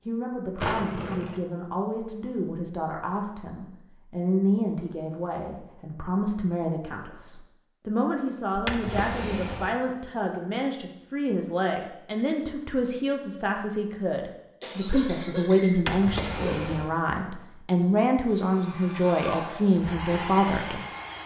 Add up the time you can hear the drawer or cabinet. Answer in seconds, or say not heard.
3 s.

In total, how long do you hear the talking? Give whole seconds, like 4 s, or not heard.
21 s.